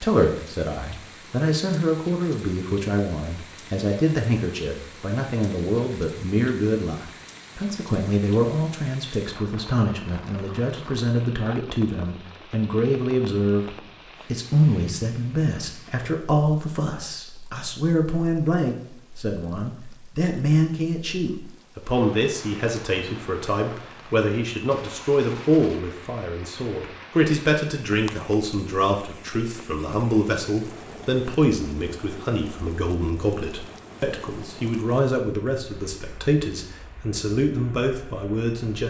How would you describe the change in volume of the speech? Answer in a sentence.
The volume of the speech stays about the same.